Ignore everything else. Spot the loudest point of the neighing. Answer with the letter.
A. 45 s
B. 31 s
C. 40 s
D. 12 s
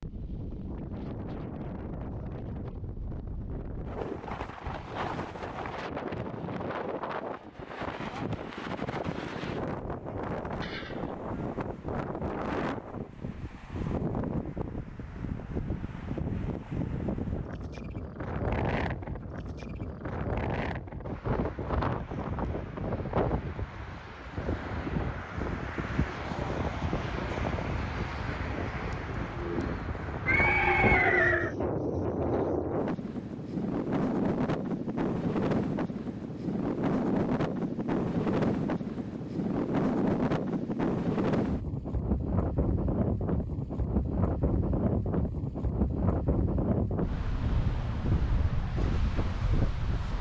B.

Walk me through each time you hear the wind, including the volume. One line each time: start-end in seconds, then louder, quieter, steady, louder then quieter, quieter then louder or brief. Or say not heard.
0.0-50.1 louder.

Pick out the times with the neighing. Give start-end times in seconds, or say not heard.
10.6-11.2, 30.2-31.6.